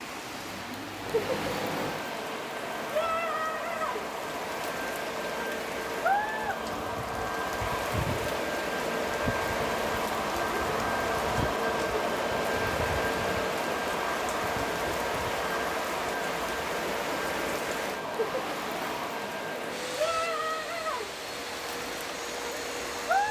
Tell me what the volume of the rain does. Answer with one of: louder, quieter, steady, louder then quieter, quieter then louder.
steady.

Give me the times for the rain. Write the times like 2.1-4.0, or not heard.
0.0-23.2.